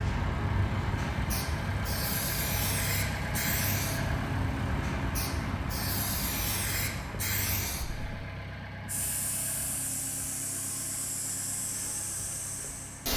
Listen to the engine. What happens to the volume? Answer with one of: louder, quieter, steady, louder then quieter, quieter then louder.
quieter.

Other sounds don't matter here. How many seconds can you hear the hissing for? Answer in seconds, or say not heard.
13 s.